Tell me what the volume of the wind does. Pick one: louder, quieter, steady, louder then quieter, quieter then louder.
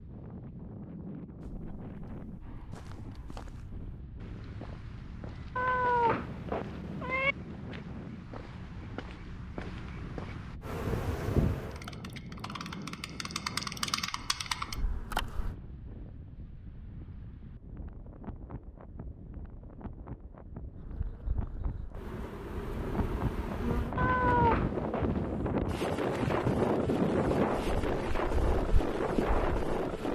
louder.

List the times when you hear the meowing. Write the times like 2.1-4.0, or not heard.
5.5-7.3, 23.9-25.5.